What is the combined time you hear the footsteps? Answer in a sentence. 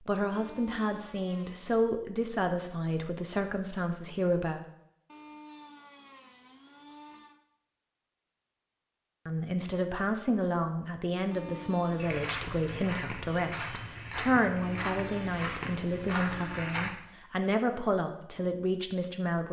You can hear the footsteps for 5 seconds altogether.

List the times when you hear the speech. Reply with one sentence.
The speech can be heard from 0.0 to 4.7 s and from 9.2 to 19.4 s.